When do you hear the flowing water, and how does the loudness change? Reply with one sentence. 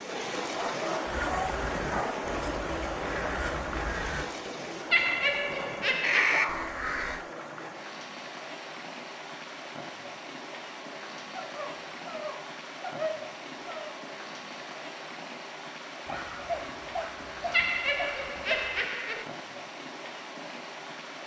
The flowing water can be heard from 0.0 to 21.2 s, getting quieter.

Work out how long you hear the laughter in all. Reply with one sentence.
The laughter can be heard for 3 seconds in total.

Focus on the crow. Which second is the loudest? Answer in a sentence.
The loudest moment of the crow is at 6 seconds.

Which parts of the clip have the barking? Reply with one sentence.
You can hear the barking from 0.5 to 2.2 s, from 5.5 to 6.7 s, from 11.3 to 13.9 s and from 16.1 to 18.9 s.